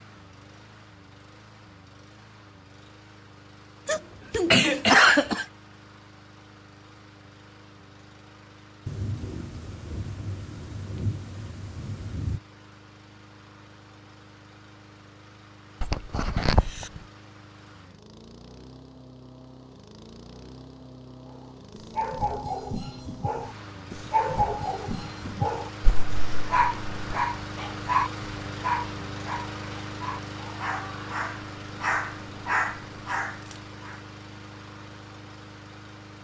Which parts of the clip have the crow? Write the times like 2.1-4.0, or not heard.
not heard.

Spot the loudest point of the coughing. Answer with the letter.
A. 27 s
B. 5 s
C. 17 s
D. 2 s
B.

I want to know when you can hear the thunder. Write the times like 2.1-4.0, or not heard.
8.8-12.4.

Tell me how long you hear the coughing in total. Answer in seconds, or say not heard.
4 s.